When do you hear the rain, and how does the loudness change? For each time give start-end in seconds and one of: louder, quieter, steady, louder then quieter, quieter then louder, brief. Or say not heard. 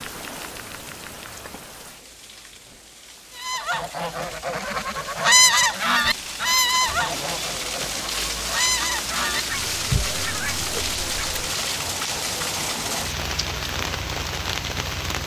0.0-15.2 louder.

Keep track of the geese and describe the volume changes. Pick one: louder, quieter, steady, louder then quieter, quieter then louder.
louder then quieter.